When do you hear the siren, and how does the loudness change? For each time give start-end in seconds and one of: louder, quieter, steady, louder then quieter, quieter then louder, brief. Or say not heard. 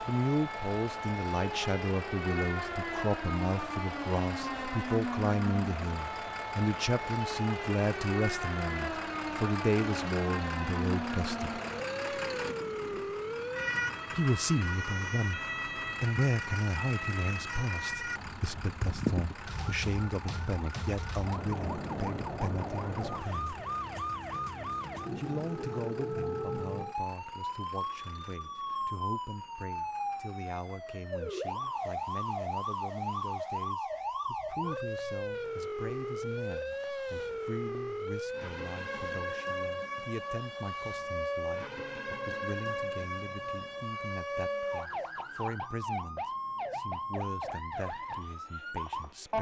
0.0-49.3 steady.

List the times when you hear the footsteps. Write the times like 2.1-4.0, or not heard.
not heard.